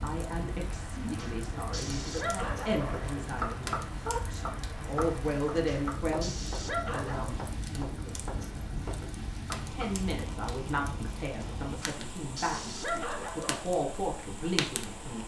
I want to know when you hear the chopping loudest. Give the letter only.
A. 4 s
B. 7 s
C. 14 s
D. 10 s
A.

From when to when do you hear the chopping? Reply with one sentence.
The chopping can be heard from 2.8 to 9.9 s.